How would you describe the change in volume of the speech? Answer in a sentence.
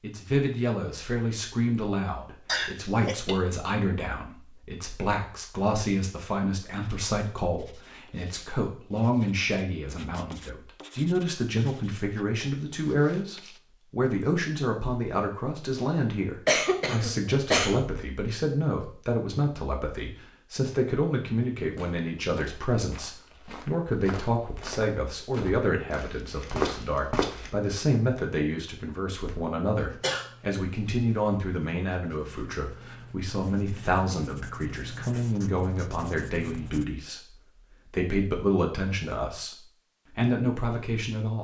The loudness of the speech stays about the same.